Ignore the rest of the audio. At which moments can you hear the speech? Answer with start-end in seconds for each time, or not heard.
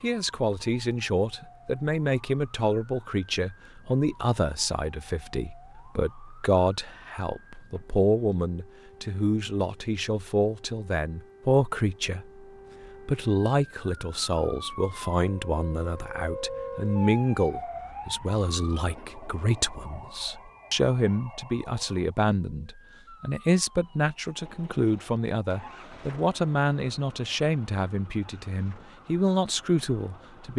0.0-12.4, 13.1-30.5.